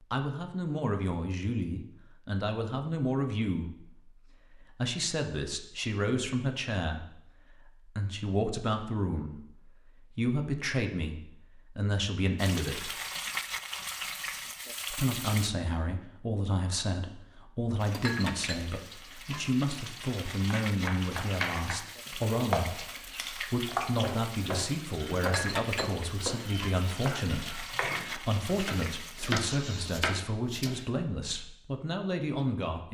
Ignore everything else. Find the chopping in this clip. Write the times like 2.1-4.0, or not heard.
20.3-30.9.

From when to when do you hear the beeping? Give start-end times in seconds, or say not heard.
not heard.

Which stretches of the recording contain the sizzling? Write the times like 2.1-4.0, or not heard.
12.3-15.5, 17.8-29.9.